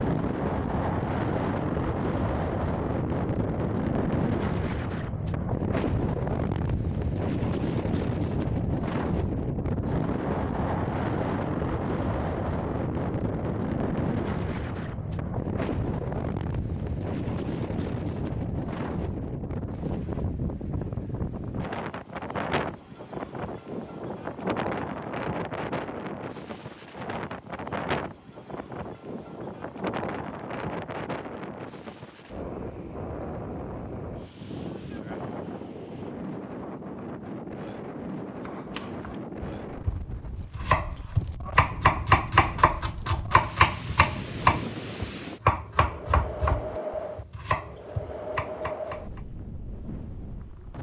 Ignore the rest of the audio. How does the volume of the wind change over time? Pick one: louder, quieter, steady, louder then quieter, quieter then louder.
quieter.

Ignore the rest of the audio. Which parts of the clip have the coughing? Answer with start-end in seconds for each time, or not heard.
not heard.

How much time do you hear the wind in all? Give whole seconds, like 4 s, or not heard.
51 s.